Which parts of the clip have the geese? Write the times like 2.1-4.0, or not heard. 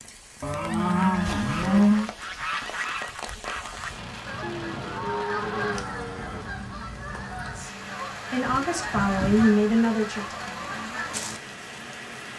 0.7-11.4.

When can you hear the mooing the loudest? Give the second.
2 s.